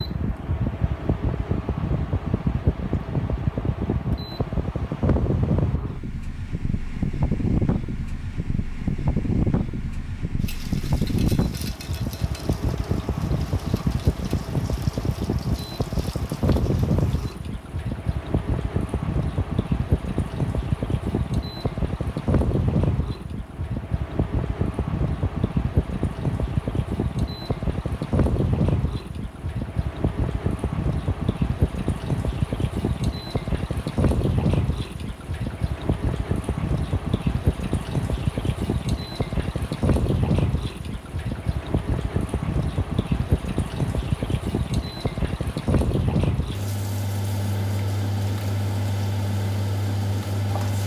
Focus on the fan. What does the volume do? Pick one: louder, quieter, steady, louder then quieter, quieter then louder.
steady.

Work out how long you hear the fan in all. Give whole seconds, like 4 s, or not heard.
51 s.